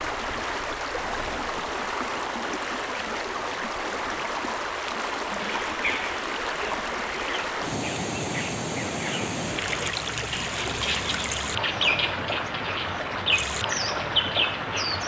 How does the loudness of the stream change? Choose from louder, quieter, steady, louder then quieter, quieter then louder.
steady.